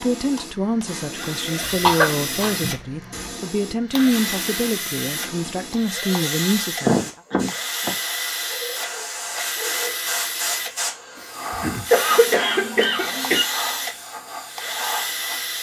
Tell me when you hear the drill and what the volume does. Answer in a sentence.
The drill can be heard from 0.0 to 15.5 s, at a steady volume.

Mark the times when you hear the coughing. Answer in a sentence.
You can hear the coughing from 1.6 to 3.3 s, from 6.8 to 8.0 s and from 11.9 to 13.4 s.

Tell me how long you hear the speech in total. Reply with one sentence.
You can hear the speech for 7 seconds altogether.